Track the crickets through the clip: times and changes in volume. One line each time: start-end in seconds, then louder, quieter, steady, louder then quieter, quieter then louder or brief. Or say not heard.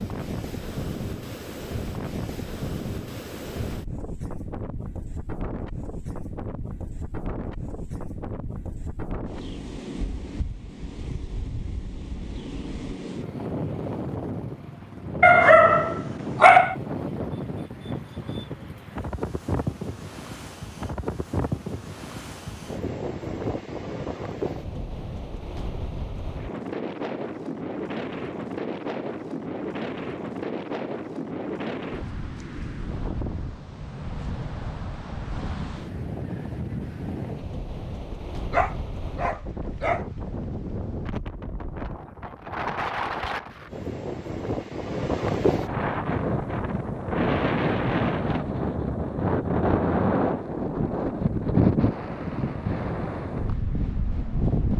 not heard.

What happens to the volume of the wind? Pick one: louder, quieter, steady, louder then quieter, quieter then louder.
louder.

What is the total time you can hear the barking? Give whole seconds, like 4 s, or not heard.
3 s.